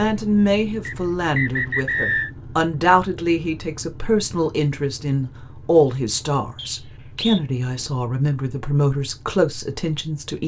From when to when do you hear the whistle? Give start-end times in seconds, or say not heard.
0.8-2.3, 6.5-7.4.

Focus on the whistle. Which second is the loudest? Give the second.
2 s.